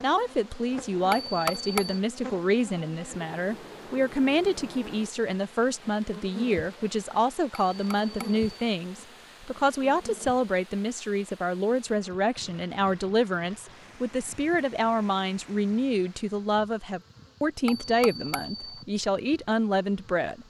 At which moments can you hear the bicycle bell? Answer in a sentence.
The bicycle bell can be heard from 1.1 to 2.0 s, from 7.7 to 8.4 s and from 17.6 to 18.9 s.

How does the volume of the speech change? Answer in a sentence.
The volume of the speech stays about the same.